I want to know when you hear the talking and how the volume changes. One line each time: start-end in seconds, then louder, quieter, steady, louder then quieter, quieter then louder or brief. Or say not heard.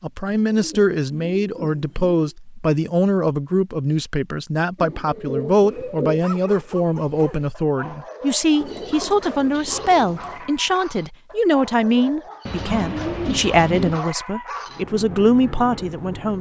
0.0-16.3 steady.